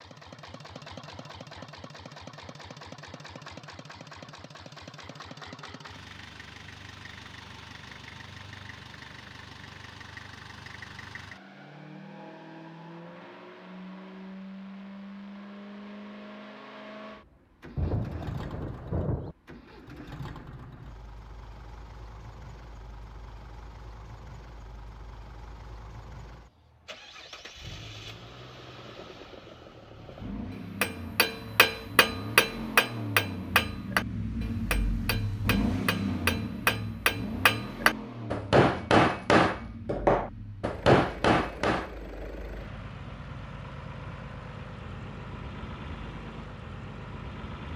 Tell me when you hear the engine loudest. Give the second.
36 s.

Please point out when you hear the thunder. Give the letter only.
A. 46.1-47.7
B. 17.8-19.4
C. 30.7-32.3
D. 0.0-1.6
B.